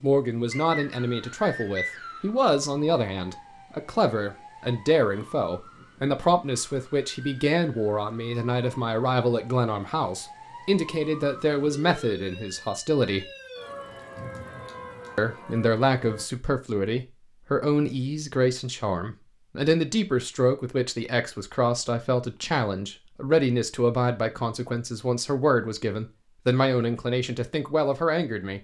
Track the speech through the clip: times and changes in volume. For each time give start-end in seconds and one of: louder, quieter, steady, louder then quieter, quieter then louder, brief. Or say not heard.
0.0-13.2 steady
15.2-28.5 steady.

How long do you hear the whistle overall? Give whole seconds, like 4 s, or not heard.
2 s.